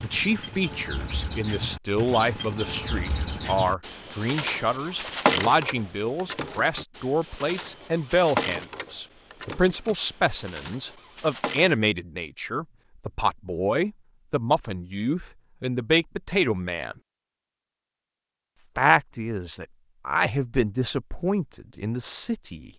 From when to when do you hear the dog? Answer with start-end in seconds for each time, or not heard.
not heard.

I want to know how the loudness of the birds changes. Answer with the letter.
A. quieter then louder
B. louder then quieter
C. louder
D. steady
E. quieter
E.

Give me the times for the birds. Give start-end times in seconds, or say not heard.
0.0-11.8.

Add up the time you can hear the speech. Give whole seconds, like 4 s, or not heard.
21 s.